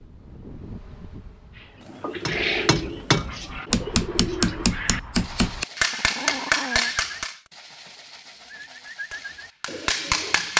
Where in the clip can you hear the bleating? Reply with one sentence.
You can't hear the bleating here.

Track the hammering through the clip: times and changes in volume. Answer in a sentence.
The hammering can be heard from 2.2 to 7.3 s, at a steady volume; and briefly from 8.8 to 10.5 s.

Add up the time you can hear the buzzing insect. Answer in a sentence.
You can hear the buzzing insect for 2 seconds altogether.